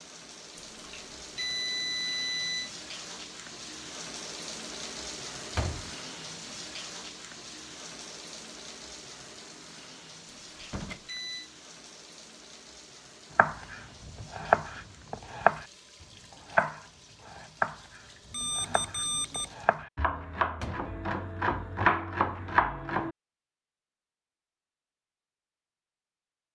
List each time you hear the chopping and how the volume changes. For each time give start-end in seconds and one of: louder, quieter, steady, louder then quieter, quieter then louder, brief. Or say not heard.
13.3-15.7 brief
16.3-23.1 quieter then louder.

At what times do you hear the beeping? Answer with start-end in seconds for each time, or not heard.
0.6-2.7, 10.4-11.5, 18.3-19.6.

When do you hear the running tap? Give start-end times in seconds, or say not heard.
0.0-19.9.